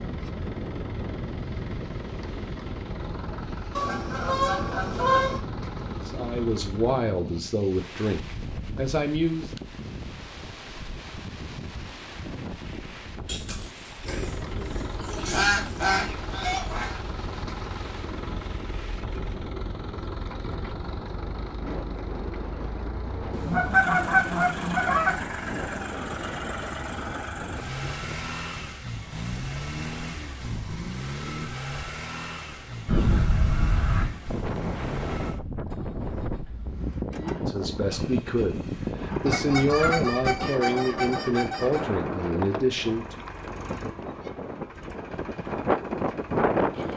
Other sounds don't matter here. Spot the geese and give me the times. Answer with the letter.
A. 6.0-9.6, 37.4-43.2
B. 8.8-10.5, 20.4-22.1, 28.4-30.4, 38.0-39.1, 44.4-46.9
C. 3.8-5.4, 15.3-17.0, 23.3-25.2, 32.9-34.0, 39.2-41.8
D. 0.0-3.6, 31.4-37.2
C.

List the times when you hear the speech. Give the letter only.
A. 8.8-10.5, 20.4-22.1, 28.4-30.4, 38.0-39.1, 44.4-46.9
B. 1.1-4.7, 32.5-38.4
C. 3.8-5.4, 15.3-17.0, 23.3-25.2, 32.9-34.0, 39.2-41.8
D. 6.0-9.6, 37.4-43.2
D.